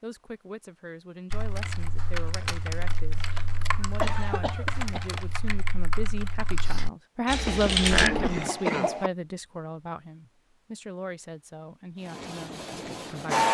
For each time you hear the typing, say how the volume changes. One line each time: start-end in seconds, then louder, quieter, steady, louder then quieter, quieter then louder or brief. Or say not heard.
1.3-8.1 steady.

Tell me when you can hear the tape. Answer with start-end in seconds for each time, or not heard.
not heard.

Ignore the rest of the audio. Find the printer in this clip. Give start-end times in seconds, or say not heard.
12.1-13.5.